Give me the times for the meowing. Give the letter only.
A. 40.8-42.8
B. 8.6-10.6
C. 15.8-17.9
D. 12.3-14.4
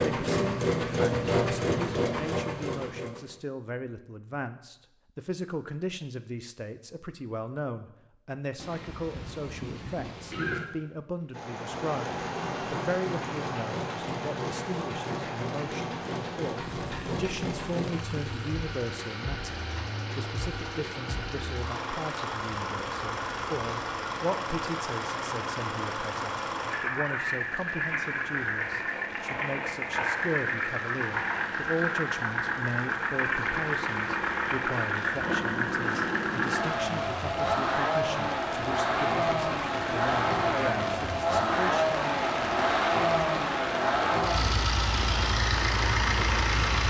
B.